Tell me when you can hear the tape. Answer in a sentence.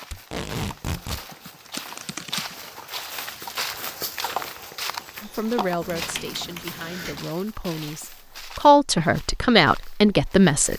The tape can be heard from 0.1 to 1.2 s.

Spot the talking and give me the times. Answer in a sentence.
The talking can be heard from 5.2 to 10.7 s.